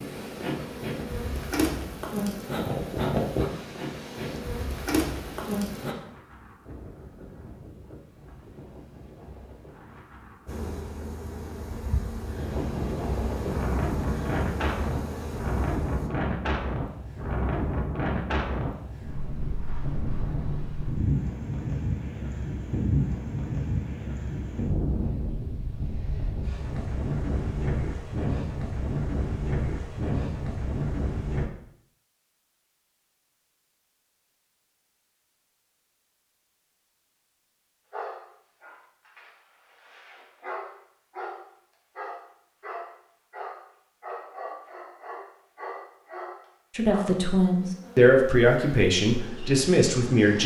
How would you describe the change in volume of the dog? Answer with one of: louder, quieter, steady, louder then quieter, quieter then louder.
louder.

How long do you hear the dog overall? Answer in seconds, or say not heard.
9 s.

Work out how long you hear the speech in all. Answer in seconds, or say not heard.
4 s.